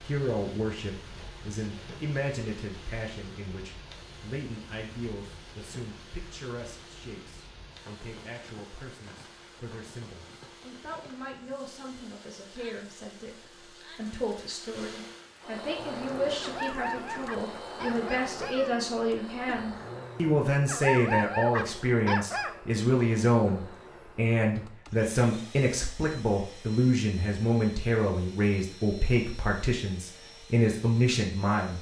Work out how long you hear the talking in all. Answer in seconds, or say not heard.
32 s.